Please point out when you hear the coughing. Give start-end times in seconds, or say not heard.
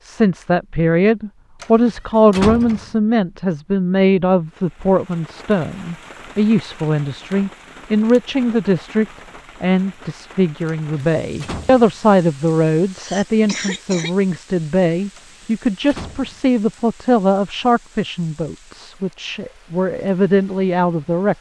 12.9-14.2.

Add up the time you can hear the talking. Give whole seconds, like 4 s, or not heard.
21 s.